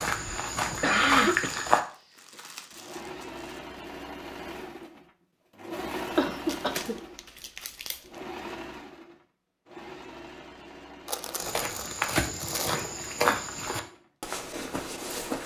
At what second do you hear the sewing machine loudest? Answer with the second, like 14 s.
6 s.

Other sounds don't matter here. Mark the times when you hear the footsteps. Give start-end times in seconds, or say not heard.
0.0-1.8, 11.3-15.4.